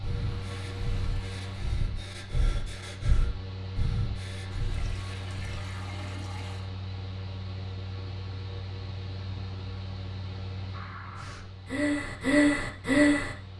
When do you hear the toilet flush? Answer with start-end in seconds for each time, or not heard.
0.1-1.6, 4.5-6.7, 10.7-11.4.